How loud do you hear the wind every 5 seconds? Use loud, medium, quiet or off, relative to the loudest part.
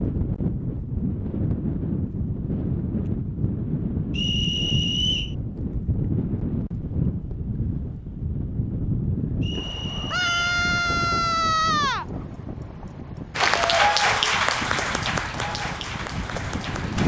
loud, loud, medium, loud.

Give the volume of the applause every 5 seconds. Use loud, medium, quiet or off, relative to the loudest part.
off, off, loud, medium.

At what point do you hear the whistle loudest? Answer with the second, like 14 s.
5 s.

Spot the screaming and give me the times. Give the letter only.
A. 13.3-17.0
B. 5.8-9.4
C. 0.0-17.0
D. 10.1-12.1
D.